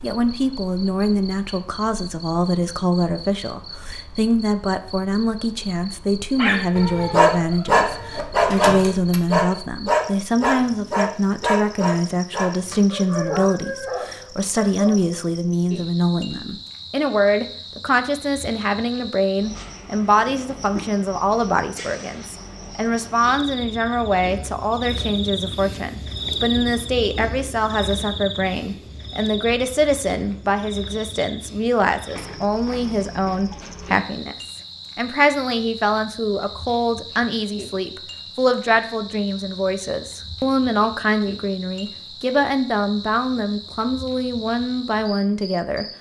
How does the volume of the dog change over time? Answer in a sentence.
The volume of the dog goes down.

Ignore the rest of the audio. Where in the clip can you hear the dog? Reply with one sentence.
You can hear the dog from 6.3 to 15.0 s.